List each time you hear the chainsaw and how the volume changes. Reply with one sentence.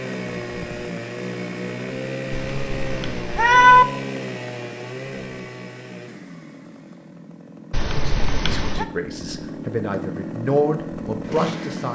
You can hear the chainsaw from 0.0 to 11.8 s, getting quieter then louder.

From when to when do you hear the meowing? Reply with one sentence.
The meowing can be heard from 2.3 to 3.9 s and from 7.7 to 8.8 s.